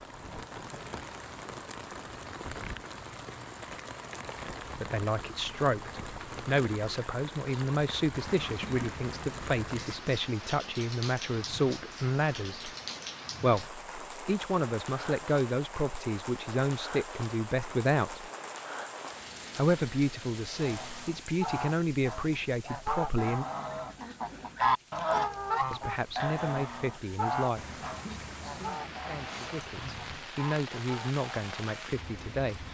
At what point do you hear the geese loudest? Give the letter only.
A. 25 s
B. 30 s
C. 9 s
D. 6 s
A.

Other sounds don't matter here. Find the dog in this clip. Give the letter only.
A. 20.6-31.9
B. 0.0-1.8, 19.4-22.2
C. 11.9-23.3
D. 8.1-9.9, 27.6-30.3
D.